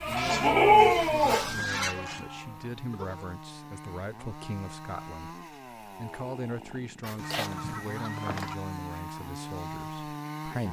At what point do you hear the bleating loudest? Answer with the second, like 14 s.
1 s.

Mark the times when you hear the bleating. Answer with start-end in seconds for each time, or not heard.
0.0-3.4.